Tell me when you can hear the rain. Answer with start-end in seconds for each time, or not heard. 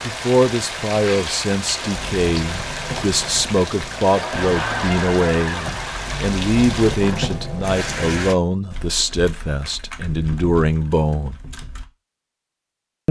0.0-8.3.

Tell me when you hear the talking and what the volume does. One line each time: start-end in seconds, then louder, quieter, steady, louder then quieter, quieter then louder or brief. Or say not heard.
0.1-11.3 steady.